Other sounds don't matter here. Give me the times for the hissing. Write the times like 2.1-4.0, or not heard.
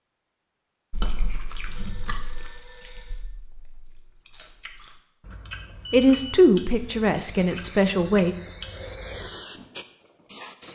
7.2-10.6.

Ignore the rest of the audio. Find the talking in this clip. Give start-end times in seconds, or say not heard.
5.9-8.3.